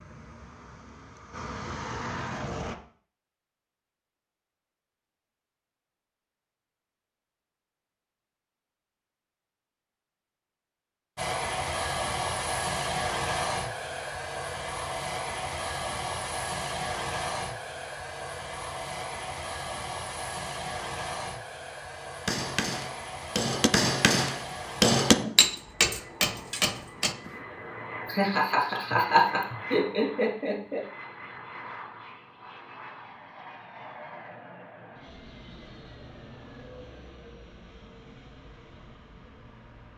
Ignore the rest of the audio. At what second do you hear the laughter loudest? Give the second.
29 s.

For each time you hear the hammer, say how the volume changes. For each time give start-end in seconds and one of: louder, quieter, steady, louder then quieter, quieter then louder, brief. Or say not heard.
22.2-27.4 louder then quieter.